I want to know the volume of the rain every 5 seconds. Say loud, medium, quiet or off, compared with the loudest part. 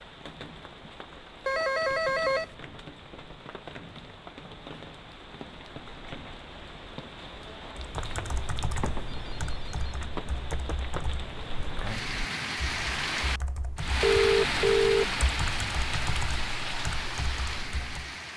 quiet, medium, loud, loud.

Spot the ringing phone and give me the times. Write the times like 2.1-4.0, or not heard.
1.4-2.5, 8.8-10.1, 14.0-15.2.